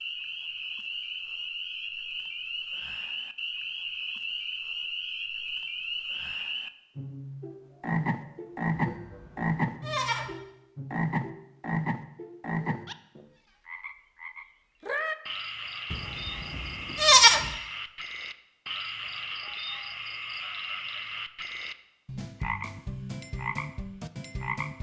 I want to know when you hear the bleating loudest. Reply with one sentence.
The volume of the bleating peaks at 17 seconds.